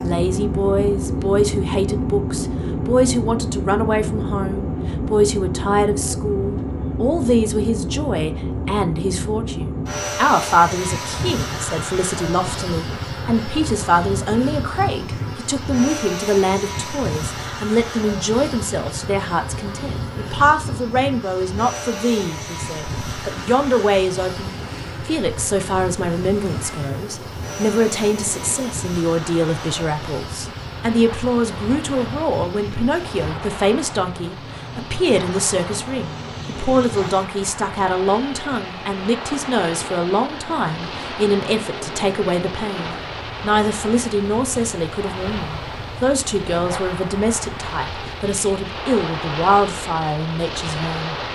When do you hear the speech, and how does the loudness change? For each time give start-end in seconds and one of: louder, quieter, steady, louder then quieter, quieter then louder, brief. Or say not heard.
0.0-51.1 steady.